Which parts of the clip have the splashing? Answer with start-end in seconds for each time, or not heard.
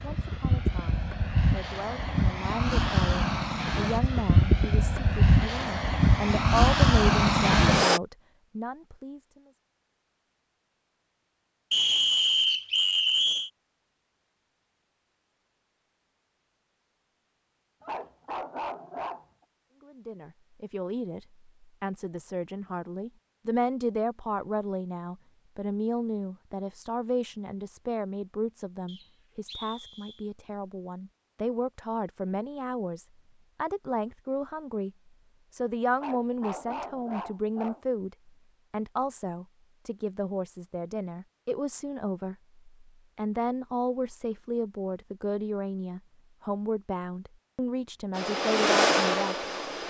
not heard.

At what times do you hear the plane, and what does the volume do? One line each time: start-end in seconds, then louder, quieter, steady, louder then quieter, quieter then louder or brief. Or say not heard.
0.0-8.0 louder
48.1-49.8 brief.